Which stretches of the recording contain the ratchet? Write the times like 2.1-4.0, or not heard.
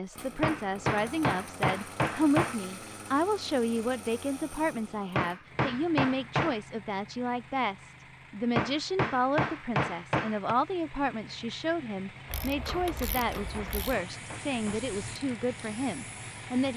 12.2-13.9.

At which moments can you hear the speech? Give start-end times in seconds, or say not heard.
0.0-16.7.